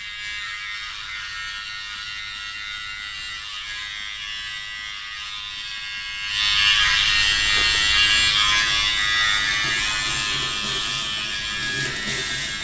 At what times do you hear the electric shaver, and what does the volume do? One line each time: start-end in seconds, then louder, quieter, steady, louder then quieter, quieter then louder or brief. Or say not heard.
0.0-12.6 louder then quieter.